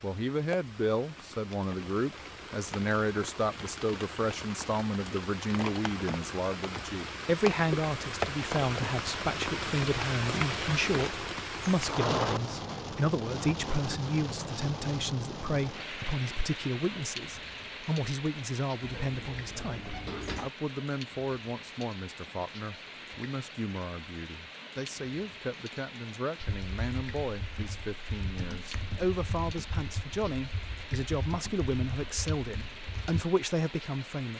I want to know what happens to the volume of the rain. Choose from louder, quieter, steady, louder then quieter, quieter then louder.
louder then quieter.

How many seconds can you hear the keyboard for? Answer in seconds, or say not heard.
7 s.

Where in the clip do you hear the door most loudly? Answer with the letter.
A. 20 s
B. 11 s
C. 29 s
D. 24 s
A.